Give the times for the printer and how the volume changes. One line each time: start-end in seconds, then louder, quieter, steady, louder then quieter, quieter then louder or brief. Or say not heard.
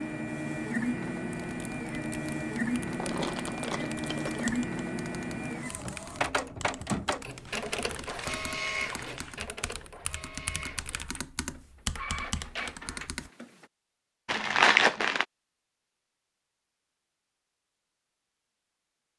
0.0-13.7 quieter.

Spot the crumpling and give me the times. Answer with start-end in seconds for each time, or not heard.
3.0-4.5, 7.5-9.4, 14.2-15.2.